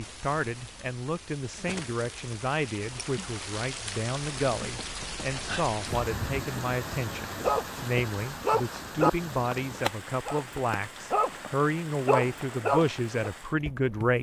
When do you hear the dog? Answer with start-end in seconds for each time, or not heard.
7.4-13.3.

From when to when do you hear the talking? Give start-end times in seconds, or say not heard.
0.0-14.1.